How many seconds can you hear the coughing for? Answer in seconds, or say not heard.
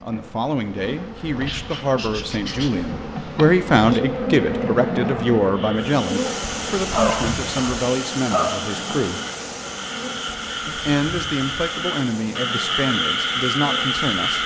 2 s.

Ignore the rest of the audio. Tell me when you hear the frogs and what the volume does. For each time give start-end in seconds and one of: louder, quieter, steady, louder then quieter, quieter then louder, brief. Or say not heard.
5.5-14.4 louder.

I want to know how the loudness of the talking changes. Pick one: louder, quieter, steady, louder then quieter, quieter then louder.
louder then quieter.